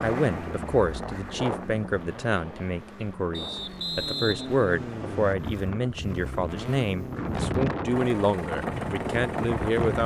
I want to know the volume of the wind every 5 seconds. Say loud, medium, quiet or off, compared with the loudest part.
medium, loud.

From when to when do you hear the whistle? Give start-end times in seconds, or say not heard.
3.3-5.3.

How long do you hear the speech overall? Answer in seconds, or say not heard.
10 s.